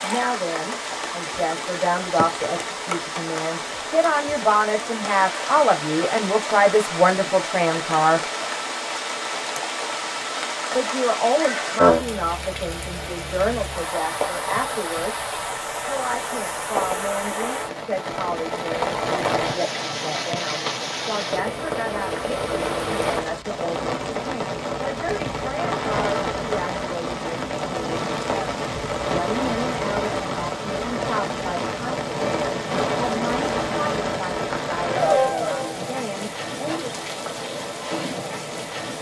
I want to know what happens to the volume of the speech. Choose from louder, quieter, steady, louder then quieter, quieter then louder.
quieter.